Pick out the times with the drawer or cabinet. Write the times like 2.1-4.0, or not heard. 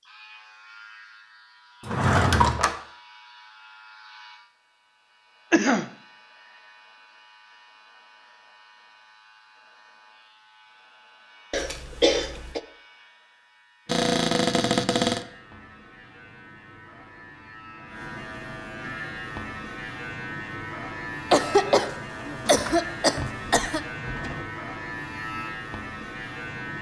1.9-2.8, 13.8-15.2, 22.4-24.4.